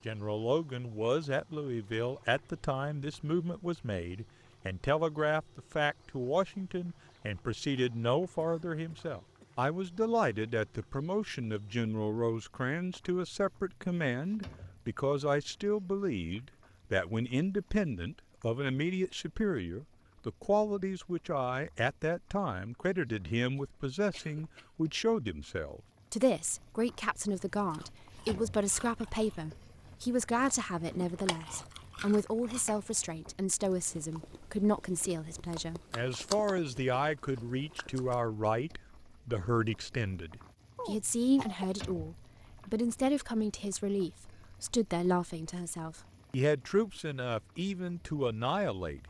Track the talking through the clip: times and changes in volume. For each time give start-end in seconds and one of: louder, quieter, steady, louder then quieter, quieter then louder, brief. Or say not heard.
0.1-49.0 steady.